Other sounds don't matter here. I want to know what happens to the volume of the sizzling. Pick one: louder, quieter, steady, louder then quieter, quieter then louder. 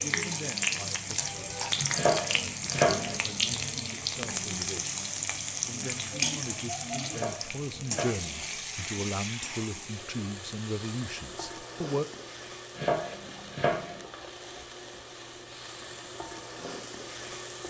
quieter.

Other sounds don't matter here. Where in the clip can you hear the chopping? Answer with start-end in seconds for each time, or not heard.
1.9-3.1, 7.1-8.3, 12.8-14.0.